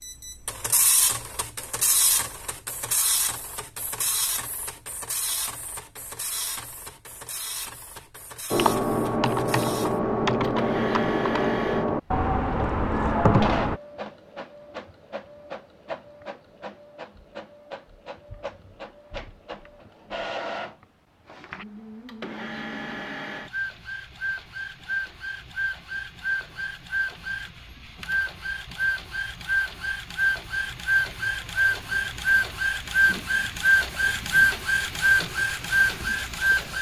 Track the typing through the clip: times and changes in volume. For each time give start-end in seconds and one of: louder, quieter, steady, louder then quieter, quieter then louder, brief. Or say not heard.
8.5-13.8 steady.